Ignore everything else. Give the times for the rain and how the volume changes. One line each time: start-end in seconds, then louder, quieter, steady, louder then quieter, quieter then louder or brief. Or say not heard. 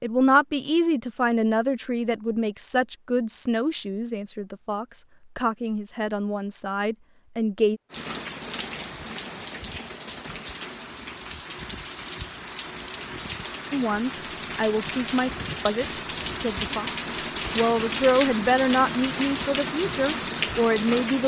7.9-21.2 louder.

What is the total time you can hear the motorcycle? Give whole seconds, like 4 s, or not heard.
not heard.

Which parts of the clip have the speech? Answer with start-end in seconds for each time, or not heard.
0.0-7.8, 13.7-21.2.